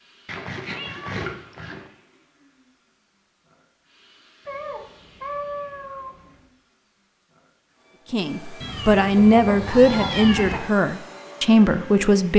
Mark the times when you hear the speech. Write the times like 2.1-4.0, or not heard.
8.1-12.3.